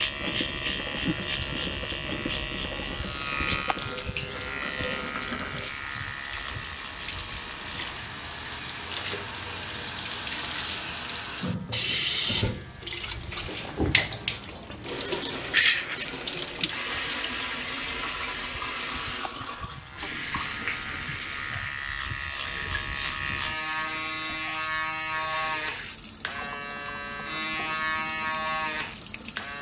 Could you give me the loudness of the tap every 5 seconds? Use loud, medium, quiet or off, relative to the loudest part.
medium, medium, loud, loud, medium, quiet.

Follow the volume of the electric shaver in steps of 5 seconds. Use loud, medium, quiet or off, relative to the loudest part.
loud, medium, quiet, quiet, loud, loud.